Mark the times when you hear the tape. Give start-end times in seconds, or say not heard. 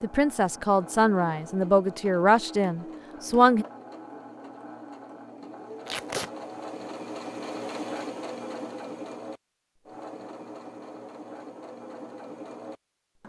5.8-6.3.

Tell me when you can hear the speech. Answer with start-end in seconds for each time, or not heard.
0.0-3.6.